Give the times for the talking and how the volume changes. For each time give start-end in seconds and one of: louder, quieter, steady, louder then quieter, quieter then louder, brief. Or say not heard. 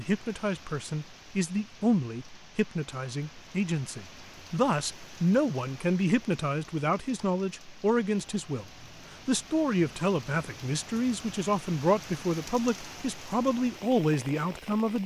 0.0-15.0 steady.